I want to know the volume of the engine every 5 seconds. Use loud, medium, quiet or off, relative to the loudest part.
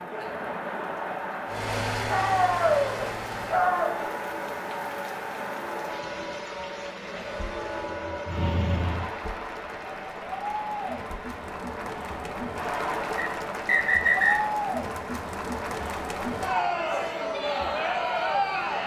loud, loud, off, off.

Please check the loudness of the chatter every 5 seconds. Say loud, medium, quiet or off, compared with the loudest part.
medium, medium, loud, loud.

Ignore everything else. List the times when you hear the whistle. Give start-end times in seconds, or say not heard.
13.2-14.4.